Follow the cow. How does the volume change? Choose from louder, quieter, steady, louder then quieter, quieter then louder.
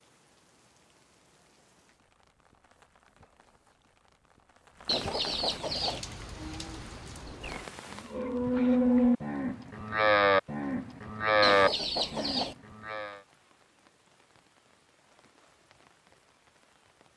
louder.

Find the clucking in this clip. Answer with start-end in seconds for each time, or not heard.
4.8-6.0, 11.4-12.6.